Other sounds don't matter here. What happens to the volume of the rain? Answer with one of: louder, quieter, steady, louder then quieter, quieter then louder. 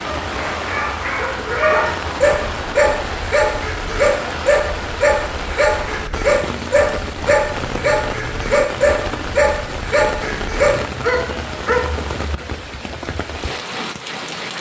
steady.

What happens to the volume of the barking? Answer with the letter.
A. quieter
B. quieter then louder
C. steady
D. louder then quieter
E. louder
C.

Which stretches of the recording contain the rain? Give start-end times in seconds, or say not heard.
0.0-14.5.